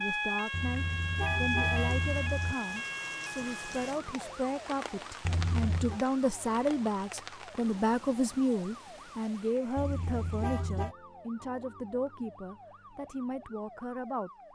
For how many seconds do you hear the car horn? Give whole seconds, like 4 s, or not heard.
4 s.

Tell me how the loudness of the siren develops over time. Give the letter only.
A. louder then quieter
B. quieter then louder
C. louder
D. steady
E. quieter
E.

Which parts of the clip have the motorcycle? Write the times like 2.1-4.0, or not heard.
not heard.